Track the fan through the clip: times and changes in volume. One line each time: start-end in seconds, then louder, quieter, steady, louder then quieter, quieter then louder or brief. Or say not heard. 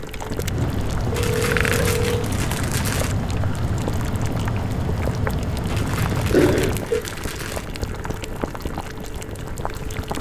0.0-6.8 steady.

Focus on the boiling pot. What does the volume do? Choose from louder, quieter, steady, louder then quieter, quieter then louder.
steady.